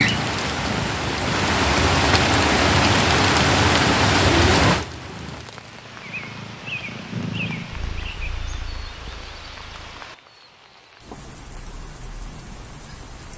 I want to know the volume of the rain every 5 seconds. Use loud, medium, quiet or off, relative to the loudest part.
loud, quiet, quiet.